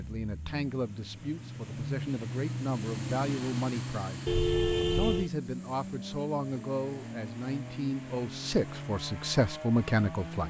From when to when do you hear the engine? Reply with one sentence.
The engine can be heard from 0.0 to 10.4 s.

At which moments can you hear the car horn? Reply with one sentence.
The car horn can be heard from 4.2 to 5.3 s.